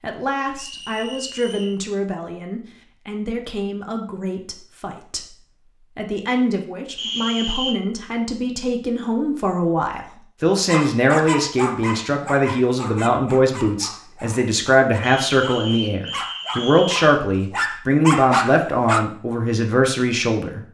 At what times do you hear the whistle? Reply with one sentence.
You can hear the whistle from 0.6 to 1.8 s, from 7.0 to 7.8 s and from 15.0 to 17.1 s.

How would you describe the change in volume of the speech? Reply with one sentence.
The loudness of the speech goes up.